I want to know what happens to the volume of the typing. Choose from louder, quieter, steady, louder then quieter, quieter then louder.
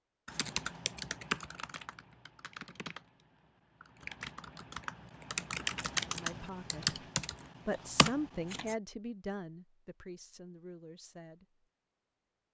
quieter then louder.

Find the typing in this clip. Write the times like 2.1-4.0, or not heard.
0.2-8.8.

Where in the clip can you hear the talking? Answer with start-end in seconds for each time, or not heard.
6.1-7.0, 7.7-11.4.